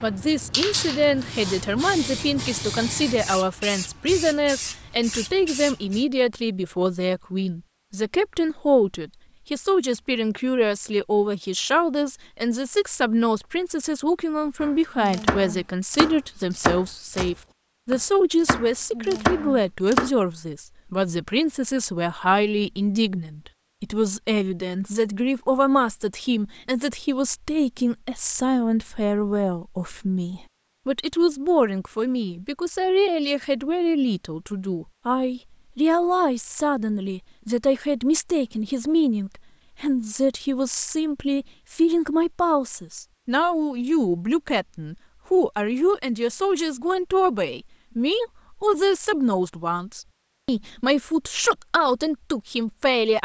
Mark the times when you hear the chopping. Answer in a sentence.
The chopping can be heard from 14.6 to 20.1 s.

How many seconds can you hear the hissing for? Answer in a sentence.
The hissing can be heard for 6 seconds in total.